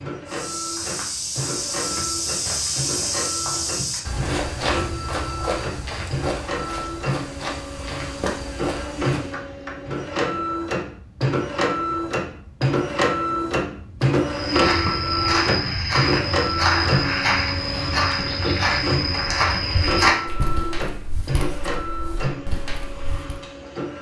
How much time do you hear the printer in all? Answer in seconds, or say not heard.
24 s.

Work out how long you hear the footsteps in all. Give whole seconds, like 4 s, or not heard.
18 s.